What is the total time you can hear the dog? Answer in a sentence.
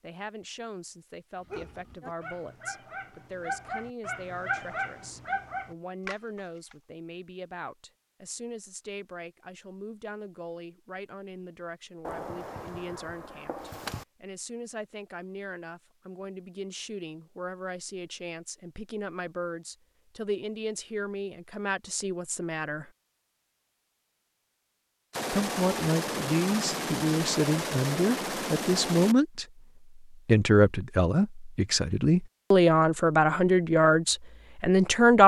You can hear the dog for 5 seconds altogether.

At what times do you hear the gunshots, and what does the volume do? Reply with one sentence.
You can hear the gunshots briefly from 12.1 to 14.1 s; and from 25.1 to 29.1 s, at a steady volume.